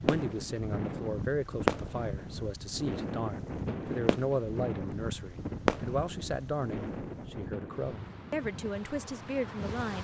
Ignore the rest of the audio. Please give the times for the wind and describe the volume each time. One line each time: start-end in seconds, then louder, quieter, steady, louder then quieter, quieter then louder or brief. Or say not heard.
0.0-9.9 quieter.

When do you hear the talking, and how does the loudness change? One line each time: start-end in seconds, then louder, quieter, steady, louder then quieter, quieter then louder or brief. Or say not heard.
0.0-9.9 steady.